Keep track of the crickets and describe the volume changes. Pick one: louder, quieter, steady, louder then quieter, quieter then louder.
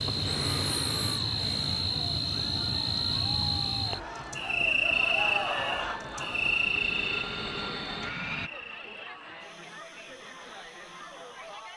quieter.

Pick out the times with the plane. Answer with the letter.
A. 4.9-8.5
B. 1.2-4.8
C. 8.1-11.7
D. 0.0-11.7
A.